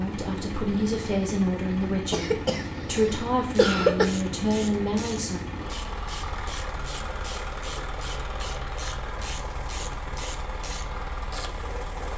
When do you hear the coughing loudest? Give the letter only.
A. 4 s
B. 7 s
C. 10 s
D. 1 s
A.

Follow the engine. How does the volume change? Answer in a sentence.
The loudness of the engine stays about the same.